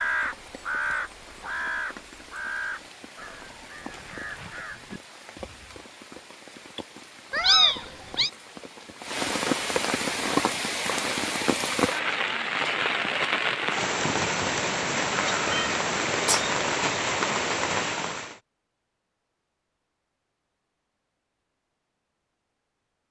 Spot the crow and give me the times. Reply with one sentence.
You can hear the crow from 0.0 to 5.8 s.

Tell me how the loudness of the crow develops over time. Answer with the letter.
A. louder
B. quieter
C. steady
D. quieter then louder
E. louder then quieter
B.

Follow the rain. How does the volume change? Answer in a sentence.
The loudness of the rain goes up.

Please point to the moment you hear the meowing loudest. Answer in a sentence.
The loudest moment of the meowing is at 8 seconds.